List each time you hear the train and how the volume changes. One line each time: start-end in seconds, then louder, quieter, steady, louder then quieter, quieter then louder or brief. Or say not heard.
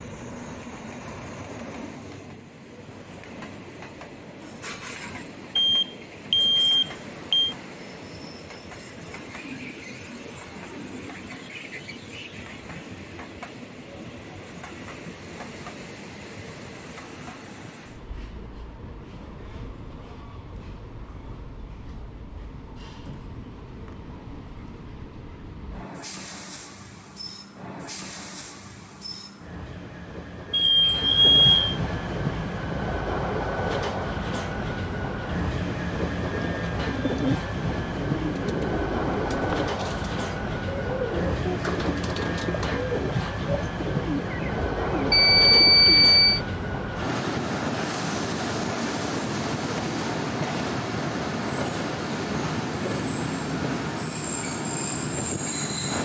0.0-55.9 louder.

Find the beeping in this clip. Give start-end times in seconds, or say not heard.
5.5-7.5, 30.5-31.8, 45.1-46.4.